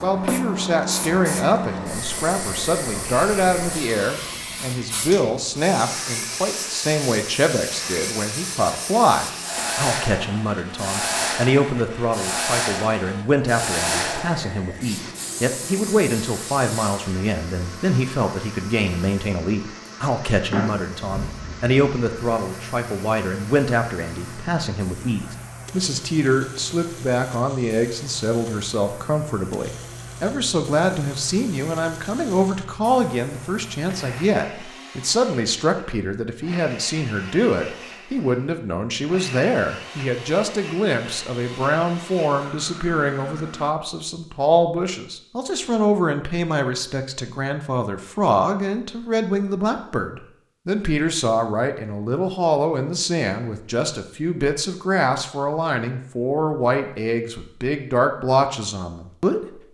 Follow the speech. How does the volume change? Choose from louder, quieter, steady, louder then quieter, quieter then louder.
steady.